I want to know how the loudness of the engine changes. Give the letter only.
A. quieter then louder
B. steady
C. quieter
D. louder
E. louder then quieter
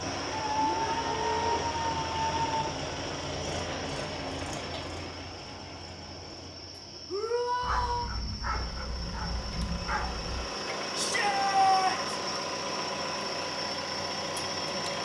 A.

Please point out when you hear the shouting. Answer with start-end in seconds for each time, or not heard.
0.6-1.6, 7.0-8.1, 10.9-12.2.